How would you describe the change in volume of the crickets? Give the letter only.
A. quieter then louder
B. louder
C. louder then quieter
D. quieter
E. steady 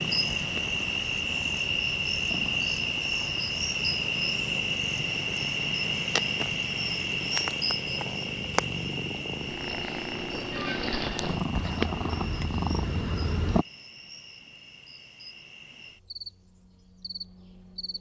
D.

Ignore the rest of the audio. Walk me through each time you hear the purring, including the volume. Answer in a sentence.
You can hear the purring from 0.0 to 13.7 s, getting louder.